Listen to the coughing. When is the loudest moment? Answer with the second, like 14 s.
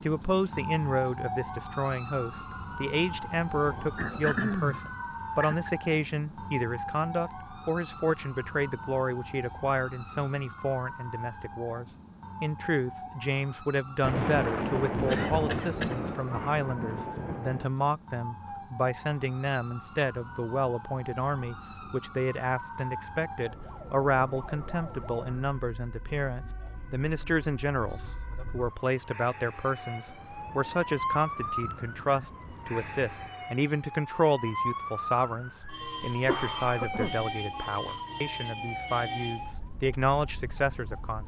4 s.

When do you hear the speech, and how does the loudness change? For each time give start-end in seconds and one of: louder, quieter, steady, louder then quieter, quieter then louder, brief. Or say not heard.
0.0-41.2 steady.